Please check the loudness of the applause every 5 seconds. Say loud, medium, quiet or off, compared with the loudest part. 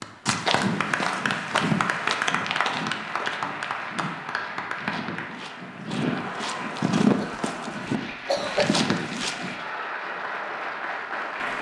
loud, medium, loud.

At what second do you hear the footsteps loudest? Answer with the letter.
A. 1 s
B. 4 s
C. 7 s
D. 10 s
C.